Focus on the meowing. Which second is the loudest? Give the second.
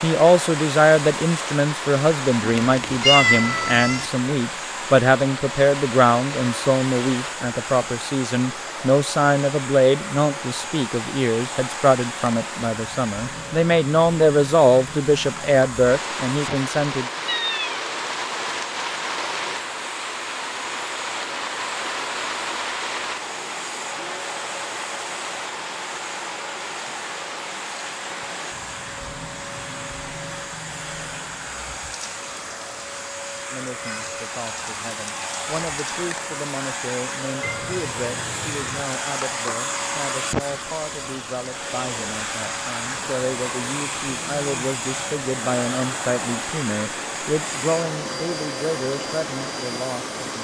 3 s.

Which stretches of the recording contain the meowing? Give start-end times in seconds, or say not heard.
2.4-4.1, 17.2-17.8, 37.4-38.9.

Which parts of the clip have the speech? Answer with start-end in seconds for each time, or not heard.
0.0-17.1, 33.5-50.4.